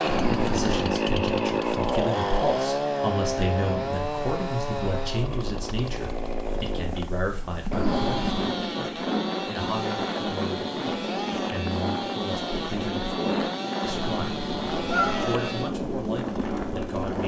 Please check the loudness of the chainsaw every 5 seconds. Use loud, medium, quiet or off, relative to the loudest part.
loud, medium, medium, medium.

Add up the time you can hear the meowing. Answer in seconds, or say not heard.
3 s.